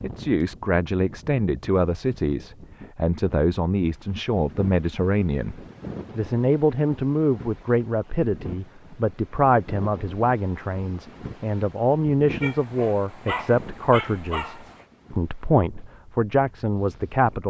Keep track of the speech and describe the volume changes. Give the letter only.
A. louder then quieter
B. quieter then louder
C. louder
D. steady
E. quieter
D.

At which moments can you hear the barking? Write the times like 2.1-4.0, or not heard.
12.4-14.8.